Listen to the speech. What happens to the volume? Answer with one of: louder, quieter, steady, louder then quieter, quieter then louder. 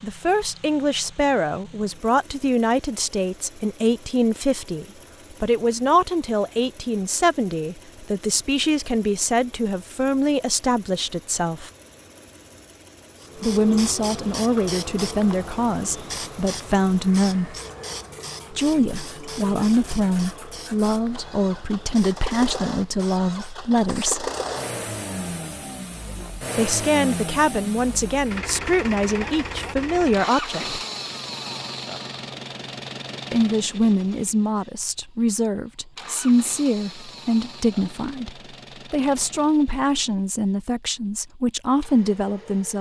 steady.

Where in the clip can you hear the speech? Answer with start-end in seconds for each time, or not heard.
0.0-11.7, 13.4-17.6, 18.5-24.3, 26.6-30.8, 33.3-42.7.